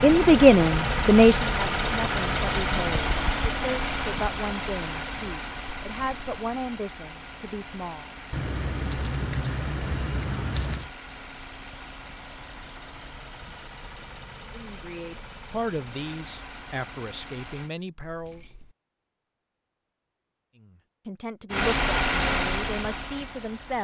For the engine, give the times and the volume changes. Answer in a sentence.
The engine can be heard from 0.0 to 17.7 s, getting quieter; and briefly from 21.5 to 23.7 s.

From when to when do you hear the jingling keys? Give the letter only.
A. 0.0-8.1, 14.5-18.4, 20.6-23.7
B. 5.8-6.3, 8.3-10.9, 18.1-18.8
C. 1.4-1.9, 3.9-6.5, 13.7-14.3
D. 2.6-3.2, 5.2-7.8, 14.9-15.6
B.